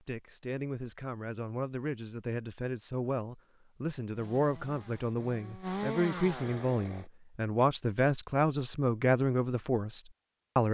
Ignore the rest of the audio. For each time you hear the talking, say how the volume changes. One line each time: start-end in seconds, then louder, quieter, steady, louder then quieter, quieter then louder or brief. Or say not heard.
0.1-10.6 louder.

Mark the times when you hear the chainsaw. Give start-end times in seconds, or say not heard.
4.2-7.0.